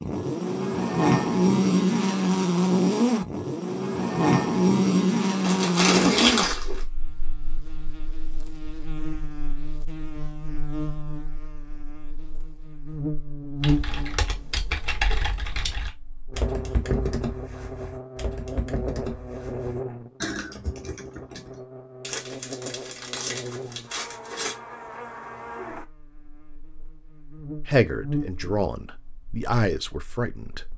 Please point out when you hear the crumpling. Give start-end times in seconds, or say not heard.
5.4-6.8, 22.0-24.6.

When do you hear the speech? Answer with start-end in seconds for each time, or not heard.
27.6-30.7.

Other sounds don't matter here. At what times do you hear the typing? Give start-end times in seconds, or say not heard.
13.6-21.6.